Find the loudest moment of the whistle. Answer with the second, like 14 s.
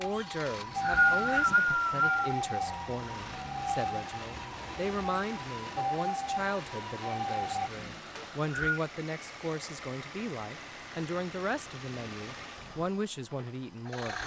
1 s.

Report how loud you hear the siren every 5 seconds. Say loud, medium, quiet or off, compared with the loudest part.
loud, loud, off.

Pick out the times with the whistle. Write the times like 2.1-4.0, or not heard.
0.5-2.4, 8.2-8.8.